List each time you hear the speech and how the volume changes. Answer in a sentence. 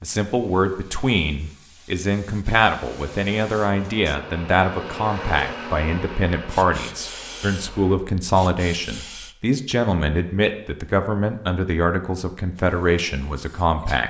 The speech can be heard from 0.0 to 14.0 s, at a steady volume.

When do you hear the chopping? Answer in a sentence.
The chopping can't be heard in this clip.